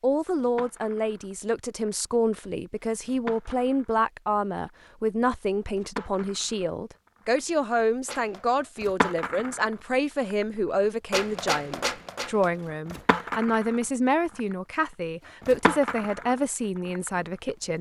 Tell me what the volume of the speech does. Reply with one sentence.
The volume of the speech stays about the same.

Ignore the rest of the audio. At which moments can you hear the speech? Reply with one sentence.
The speech can be heard from 0.0 to 17.7 s.